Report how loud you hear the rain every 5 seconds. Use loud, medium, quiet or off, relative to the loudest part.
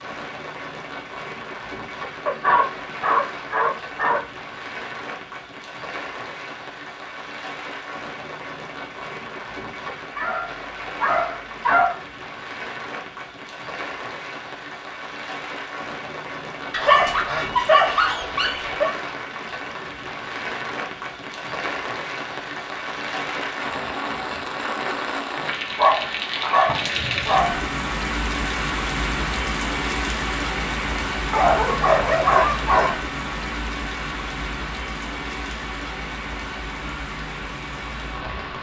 medium, medium, medium, medium, loud, loud, loud, medium.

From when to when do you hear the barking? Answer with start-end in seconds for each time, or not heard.
2.2-4.2, 10.2-11.9, 16.7-18.9, 25.7-27.6, 31.3-33.0.